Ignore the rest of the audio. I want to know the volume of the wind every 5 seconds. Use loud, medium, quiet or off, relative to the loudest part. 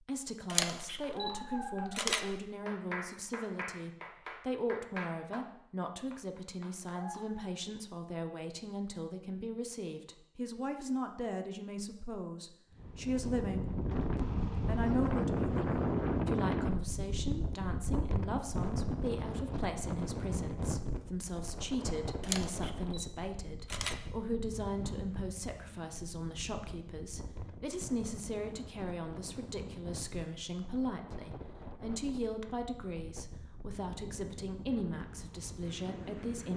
off, off, loud, loud, medium, quiet, quiet, quiet.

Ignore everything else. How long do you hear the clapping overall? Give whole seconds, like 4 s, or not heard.
6 s.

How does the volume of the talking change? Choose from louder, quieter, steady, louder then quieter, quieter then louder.
steady.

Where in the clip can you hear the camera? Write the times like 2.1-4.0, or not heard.
0.5-2.4, 22.2-24.1.